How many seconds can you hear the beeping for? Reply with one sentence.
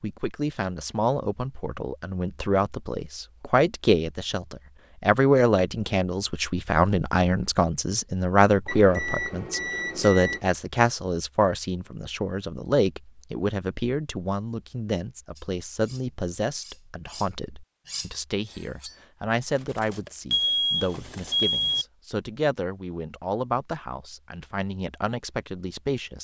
The beeping can be heard for 3 seconds in total.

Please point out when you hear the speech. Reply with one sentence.
The speech can be heard from 0.0 to 26.1 s.